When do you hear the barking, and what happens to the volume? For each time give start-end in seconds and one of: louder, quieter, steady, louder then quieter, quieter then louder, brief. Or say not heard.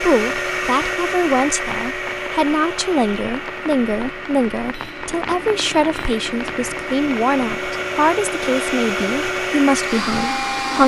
not heard.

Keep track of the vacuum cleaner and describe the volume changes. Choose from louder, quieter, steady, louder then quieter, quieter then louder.
quieter then louder.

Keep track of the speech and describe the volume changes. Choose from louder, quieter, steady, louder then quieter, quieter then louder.
steady.